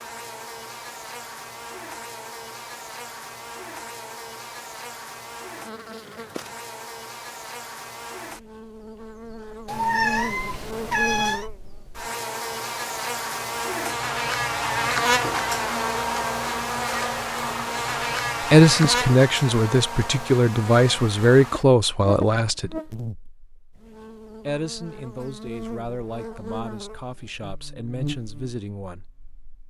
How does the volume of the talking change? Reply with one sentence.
The volume of the talking goes down.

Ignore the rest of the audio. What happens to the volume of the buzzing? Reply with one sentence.
The loudness of the buzzing goes up, then down.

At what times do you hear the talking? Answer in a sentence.
The talking can be heard from 18.5 to 22.8 s and from 24.4 to 29.1 s.